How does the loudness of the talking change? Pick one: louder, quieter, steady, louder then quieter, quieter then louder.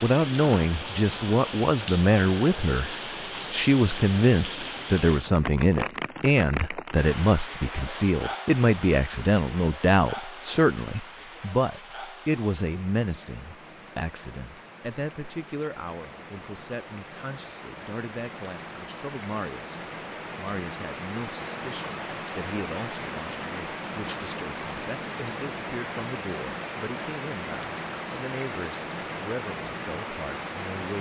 quieter.